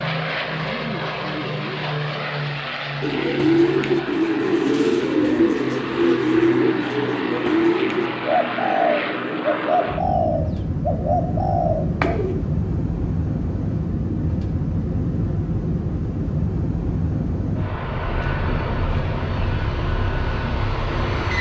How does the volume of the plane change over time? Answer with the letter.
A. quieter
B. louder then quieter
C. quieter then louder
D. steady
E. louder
D.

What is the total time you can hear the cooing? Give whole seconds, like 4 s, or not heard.
9 s.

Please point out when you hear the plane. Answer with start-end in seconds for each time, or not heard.
0.0-21.3.